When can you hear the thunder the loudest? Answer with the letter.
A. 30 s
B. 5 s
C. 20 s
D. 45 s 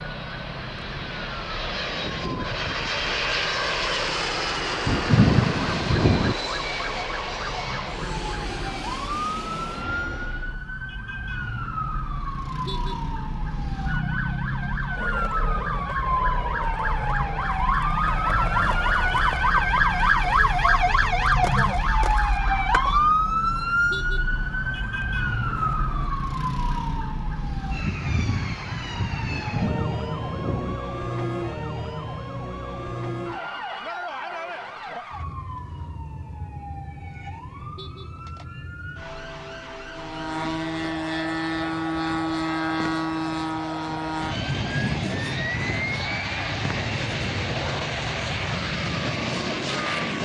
B.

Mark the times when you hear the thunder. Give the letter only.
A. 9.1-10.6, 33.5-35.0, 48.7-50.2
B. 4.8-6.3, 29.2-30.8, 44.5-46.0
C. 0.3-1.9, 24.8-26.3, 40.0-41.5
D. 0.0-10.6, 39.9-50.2
B.